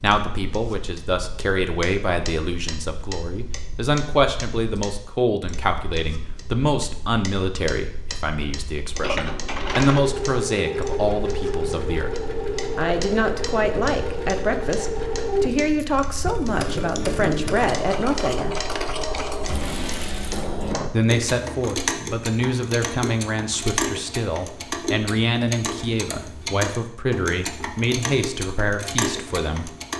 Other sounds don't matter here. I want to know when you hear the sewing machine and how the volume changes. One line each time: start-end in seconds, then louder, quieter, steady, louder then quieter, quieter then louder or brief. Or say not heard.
8.9-20.8 steady.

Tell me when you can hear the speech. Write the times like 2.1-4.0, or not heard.
0.0-12.1, 12.8-18.6, 20.9-29.7.